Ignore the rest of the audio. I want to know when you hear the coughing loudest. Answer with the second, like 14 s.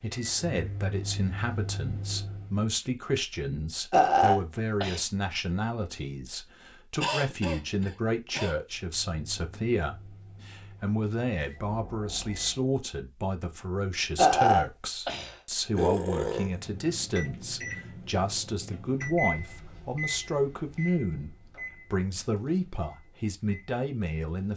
7 s.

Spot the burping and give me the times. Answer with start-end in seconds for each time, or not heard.
3.9-5.0, 14.2-16.5.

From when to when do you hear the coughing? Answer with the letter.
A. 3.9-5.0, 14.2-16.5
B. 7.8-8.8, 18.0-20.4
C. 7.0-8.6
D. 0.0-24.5
C.